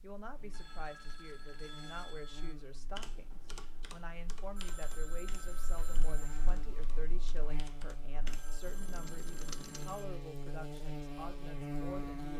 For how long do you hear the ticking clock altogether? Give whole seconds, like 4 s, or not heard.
not heard.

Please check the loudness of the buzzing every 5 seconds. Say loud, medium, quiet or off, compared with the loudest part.
quiet, medium, loud.